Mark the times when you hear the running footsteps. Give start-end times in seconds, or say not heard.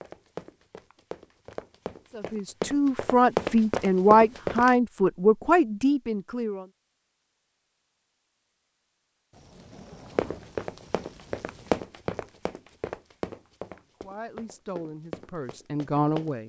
0.0-4.7, 10.2-16.3.